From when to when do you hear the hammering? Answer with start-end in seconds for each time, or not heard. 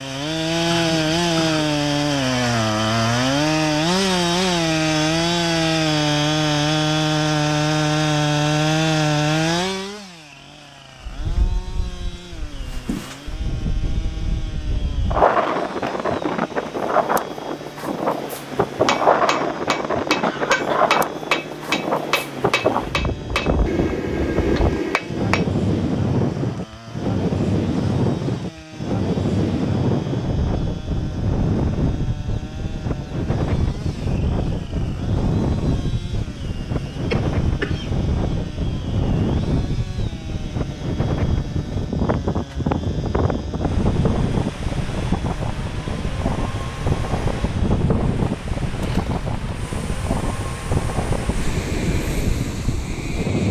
18.8-25.4.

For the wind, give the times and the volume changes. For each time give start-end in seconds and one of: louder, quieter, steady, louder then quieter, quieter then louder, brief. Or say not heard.
11.0-53.4 steady.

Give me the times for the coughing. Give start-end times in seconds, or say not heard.
0.7-1.8, 20.2-21.0, 37.1-37.9.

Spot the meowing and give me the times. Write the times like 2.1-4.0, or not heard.
not heard.